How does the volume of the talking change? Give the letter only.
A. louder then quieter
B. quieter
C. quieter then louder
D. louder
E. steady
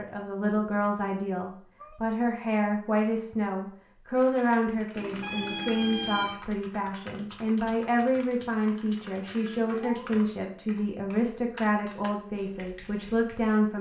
E.